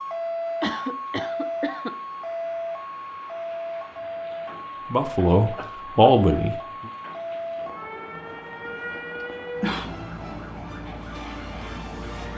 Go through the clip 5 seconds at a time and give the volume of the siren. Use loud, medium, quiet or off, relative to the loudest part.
loud, loud, medium.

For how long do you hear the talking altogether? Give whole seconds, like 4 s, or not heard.
2 s.